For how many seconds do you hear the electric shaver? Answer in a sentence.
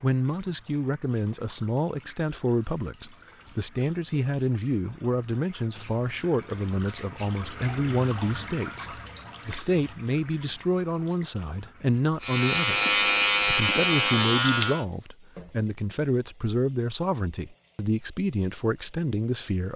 The electric shaver can be heard for 3 seconds in total.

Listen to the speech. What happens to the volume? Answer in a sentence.
The loudness of the speech stays about the same.